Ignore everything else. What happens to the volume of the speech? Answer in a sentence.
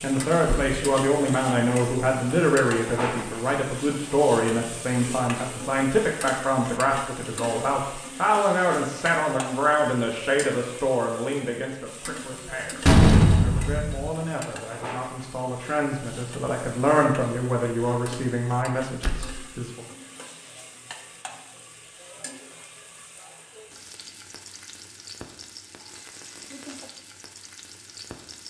The loudness of the speech goes down, then up.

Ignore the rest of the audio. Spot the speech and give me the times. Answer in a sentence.
You can hear the speech from 0.0 to 19.9 s.